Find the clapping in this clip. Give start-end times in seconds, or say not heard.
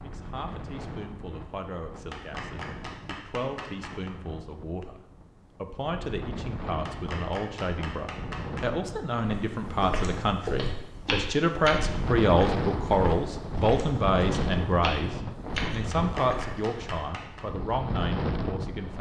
2.1-4.1, 6.8-8.7, 15.9-17.4.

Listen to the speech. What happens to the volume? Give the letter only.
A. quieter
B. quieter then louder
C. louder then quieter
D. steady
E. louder
C.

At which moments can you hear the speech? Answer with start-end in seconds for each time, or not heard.
0.0-18.9.